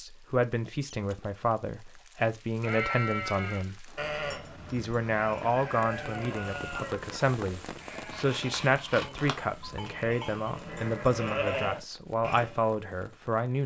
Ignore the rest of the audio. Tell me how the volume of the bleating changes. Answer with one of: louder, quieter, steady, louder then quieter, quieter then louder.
quieter then louder.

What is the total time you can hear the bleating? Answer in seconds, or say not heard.
10 s.